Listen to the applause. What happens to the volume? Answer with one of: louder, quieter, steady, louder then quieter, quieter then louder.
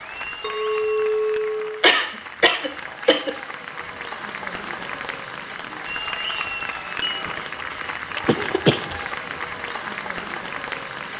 louder.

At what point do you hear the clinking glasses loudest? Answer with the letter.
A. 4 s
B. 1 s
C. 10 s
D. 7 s
B.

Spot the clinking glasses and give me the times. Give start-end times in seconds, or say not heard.
0.4-1.8, 6.2-7.4.